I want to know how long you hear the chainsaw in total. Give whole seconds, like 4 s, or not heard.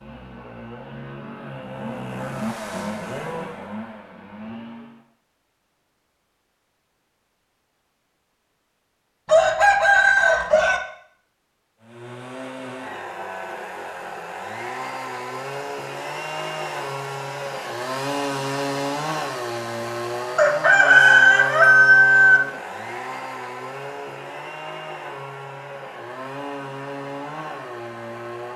22 s.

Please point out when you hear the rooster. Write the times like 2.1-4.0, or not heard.
9.2-10.8, 20.4-22.4.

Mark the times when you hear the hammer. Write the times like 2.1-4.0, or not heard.
not heard.